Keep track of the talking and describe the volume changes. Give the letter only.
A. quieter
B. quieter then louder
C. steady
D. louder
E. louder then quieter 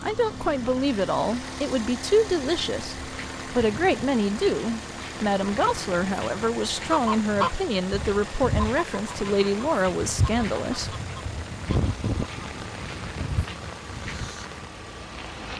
C.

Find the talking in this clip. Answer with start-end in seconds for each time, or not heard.
0.0-10.9.